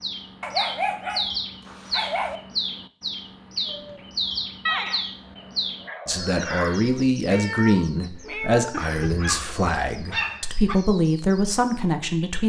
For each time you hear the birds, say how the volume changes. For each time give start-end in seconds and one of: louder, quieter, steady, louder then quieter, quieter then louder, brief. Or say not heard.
0.0-12.4 quieter.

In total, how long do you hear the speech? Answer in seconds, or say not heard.
6 s.